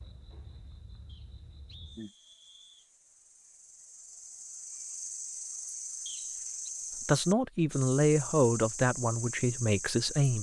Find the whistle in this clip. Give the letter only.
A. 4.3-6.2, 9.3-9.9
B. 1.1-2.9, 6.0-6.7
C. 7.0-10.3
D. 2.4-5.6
B.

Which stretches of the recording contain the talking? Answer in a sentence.
You can hear the talking from 7.0 to 10.3 s.